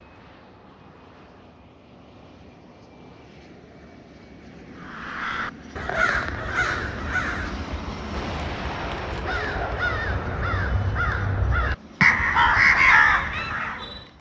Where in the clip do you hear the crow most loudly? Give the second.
13 s.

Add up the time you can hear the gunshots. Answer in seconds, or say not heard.
3 s.